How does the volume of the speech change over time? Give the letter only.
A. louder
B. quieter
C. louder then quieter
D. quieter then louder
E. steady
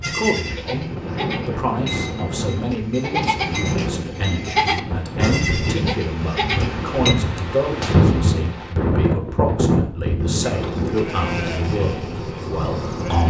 E.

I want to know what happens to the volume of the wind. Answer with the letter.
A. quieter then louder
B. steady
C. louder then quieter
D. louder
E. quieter
C.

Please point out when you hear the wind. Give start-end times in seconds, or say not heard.
0.0-13.2.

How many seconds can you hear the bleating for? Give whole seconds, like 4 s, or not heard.
10 s.